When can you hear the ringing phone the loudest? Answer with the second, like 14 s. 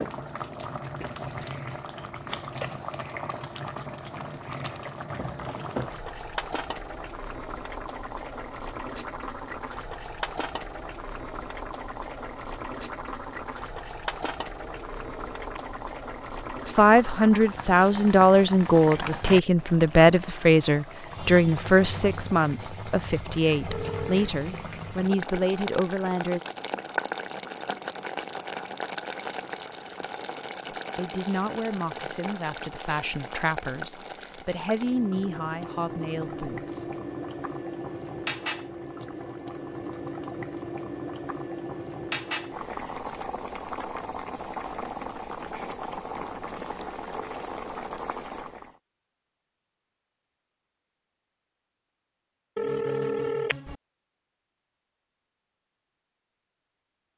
53 s.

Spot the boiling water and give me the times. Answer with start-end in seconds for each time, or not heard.
0.0-48.8.